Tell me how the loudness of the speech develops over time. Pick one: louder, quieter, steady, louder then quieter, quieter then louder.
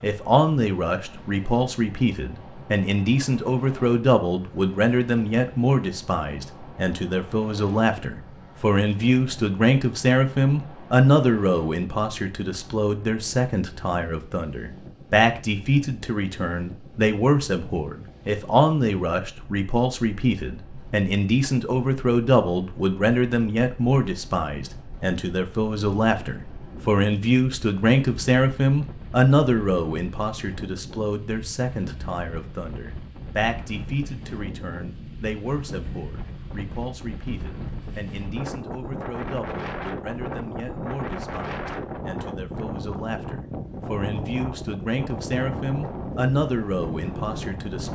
quieter.